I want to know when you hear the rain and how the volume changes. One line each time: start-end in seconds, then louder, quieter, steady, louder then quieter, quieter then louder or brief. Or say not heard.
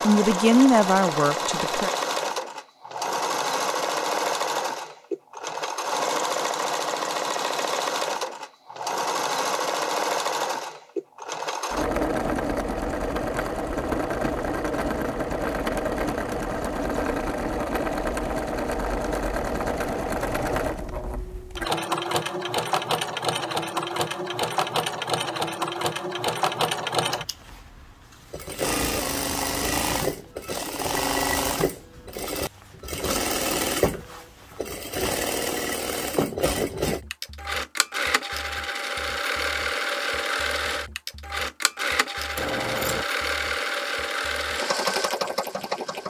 not heard.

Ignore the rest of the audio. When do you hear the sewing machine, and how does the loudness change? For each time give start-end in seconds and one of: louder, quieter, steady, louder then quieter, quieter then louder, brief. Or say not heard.
0.0-46.0 steady.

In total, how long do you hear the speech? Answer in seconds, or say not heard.
2 s.